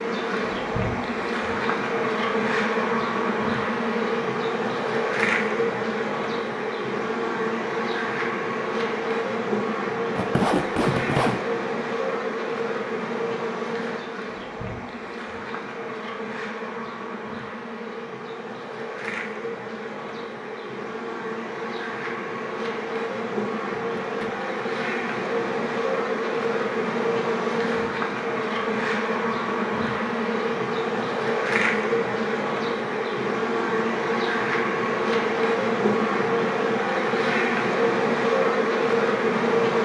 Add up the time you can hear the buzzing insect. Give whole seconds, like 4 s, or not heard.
40 s.